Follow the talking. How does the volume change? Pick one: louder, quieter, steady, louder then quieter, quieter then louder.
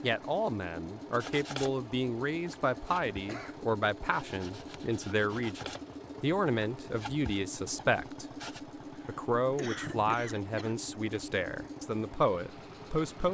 steady.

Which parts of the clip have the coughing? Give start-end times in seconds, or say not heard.
3.1-3.5, 8.9-10.8.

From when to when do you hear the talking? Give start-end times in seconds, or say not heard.
0.0-8.2, 9.1-13.2.